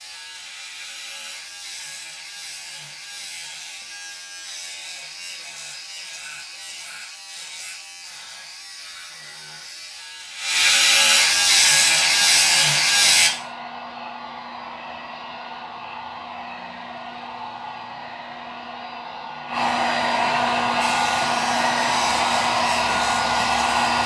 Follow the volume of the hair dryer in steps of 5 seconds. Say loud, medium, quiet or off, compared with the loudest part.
off, off, quiet, medium, loud.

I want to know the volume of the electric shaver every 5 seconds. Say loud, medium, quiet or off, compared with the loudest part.
quiet, quiet, loud, off, quiet.